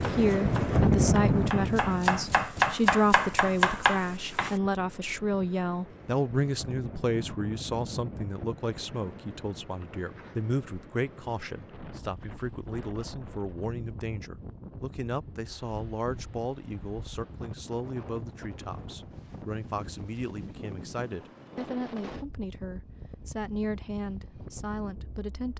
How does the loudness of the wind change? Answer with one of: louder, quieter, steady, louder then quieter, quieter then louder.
quieter.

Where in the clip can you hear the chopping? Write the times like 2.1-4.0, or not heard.
0.0-4.5.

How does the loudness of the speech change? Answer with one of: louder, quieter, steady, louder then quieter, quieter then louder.
quieter.